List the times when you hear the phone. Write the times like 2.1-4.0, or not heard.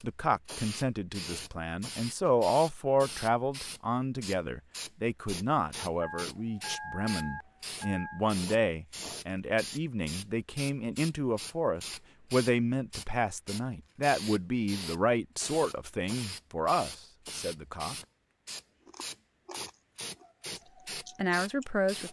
6.0-8.2.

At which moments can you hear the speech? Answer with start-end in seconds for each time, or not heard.
0.0-17.9, 21.1-22.0.